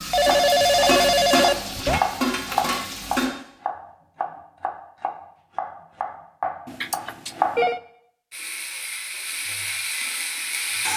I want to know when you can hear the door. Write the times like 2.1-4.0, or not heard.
not heard.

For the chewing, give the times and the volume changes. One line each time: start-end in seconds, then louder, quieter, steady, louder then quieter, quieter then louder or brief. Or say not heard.
not heard.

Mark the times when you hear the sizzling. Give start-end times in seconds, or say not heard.
0.0-3.3, 8.3-10.9.